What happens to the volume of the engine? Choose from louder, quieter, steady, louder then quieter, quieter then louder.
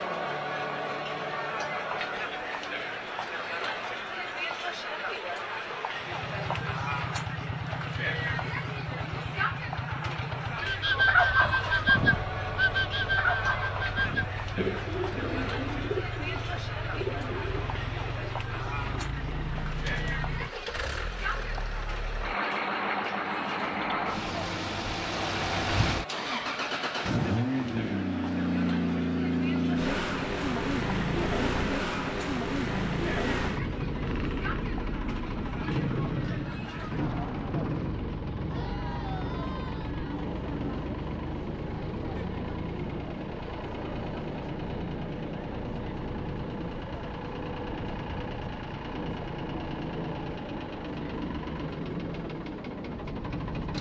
louder then quieter.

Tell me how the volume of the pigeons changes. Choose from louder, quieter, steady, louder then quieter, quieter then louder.
quieter.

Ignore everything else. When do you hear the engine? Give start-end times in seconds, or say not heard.
6.0-53.7.